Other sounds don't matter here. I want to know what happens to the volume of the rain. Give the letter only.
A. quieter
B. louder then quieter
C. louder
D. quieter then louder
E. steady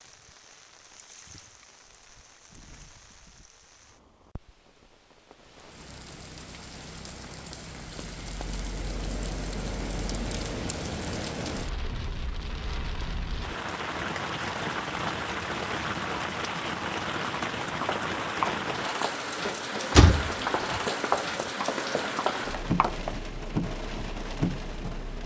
C.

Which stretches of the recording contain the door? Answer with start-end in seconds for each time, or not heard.
19.9-20.8.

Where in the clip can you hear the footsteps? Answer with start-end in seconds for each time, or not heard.
17.8-23.2.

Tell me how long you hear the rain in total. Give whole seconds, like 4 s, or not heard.
25 s.